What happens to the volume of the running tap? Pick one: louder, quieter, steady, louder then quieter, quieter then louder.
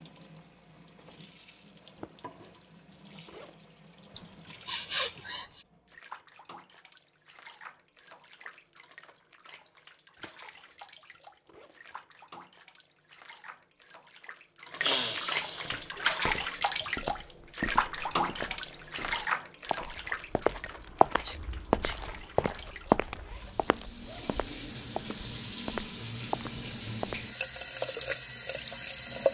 louder.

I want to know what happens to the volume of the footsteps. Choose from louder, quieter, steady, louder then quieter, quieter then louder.
louder then quieter.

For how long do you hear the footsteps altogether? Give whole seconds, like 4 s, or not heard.
12 s.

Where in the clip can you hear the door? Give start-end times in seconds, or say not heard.
not heard.